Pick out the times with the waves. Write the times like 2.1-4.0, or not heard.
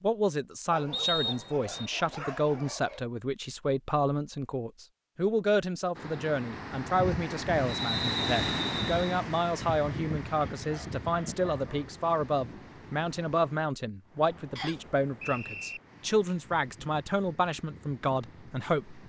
6.0-19.0.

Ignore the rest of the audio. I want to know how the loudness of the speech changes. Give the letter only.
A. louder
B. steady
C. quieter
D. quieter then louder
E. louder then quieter
B.